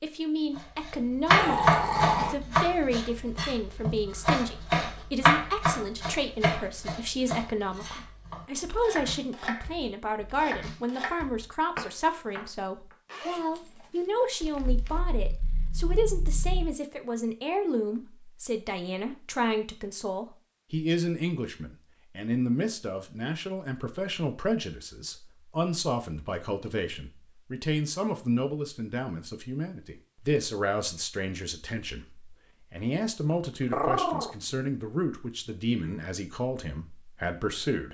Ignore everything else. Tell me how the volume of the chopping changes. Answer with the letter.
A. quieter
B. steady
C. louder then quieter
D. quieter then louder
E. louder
A.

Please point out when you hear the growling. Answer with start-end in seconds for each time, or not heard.
1.3-2.4, 14.4-16.8, 33.7-34.4.